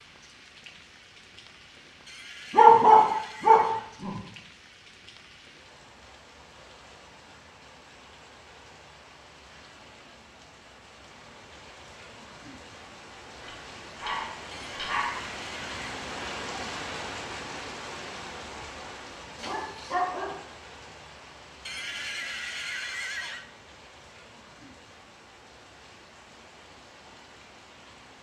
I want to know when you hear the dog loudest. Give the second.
3 s.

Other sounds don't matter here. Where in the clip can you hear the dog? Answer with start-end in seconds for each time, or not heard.
2.5-4.1, 13.4-15.2, 19.4-20.4.